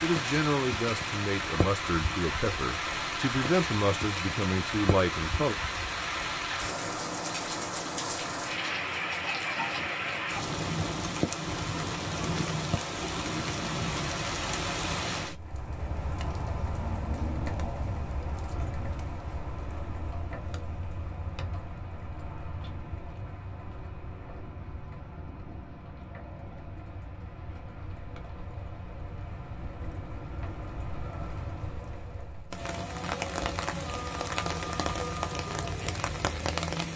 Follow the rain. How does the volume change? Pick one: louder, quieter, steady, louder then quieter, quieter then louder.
quieter then louder.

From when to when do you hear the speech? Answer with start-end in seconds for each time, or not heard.
0.0-5.5.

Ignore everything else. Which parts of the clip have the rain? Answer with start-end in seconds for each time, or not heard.
0.0-36.9.